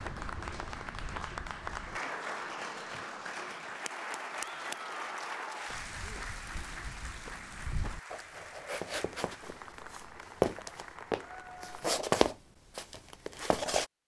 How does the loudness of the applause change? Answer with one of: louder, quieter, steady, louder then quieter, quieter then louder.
quieter.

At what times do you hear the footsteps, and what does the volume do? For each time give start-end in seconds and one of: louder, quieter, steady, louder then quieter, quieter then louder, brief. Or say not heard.
0.0-2.0 brief
5.7-13.8 louder.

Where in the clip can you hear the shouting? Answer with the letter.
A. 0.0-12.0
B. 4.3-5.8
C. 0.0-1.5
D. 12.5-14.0
B.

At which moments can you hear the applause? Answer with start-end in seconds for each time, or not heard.
0.0-12.0.